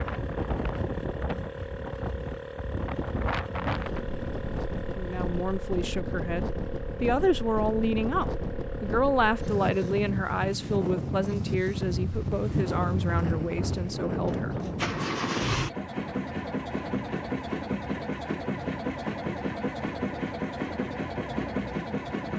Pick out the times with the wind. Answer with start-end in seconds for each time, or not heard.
0.0-15.5.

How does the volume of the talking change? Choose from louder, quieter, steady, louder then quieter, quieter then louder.
louder then quieter.